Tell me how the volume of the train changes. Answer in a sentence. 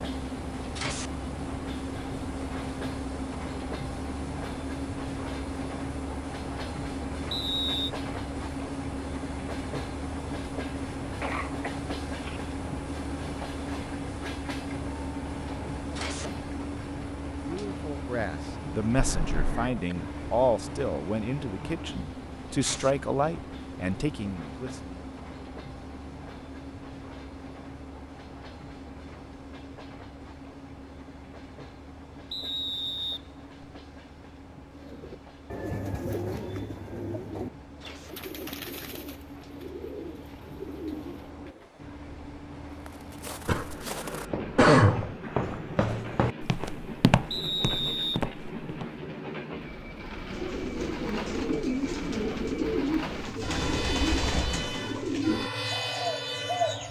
The loudness of the train goes down, then up.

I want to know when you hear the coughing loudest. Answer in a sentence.
The volume of the coughing peaks at 45 seconds.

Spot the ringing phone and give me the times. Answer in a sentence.
The ringing phone can't be heard in this clip.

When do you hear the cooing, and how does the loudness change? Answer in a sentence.
You can hear the cooing from 34.8 to 41.7 s, getting quieter; and from 50.3 to 56.8 s, at a steady volume.